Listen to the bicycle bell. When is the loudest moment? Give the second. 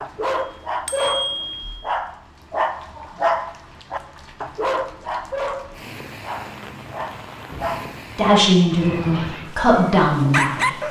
1 s.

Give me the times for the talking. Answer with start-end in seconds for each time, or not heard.
8.2-10.8.